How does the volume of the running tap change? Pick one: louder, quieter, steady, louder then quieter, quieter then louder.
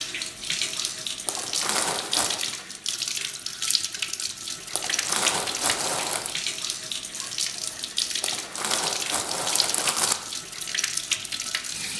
steady.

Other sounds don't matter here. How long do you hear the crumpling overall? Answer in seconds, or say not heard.
5 s.